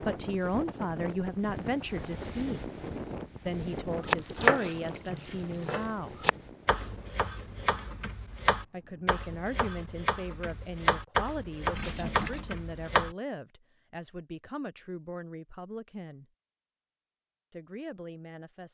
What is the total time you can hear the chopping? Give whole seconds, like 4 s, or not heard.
9 s.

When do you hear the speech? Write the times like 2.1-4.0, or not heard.
0.0-2.6, 3.5-6.2, 8.7-16.2, 17.5-18.7.